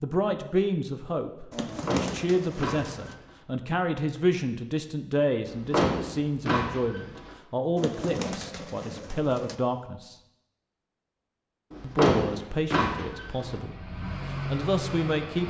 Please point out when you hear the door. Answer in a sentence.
The door can be heard from 1.6 to 3.3 s, from 5.5 to 7.3 s and from 11.7 to 13.6 s.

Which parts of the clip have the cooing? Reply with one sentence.
The cooing can be heard from 1.5 to 3.1 s and from 7.8 to 9.6 s.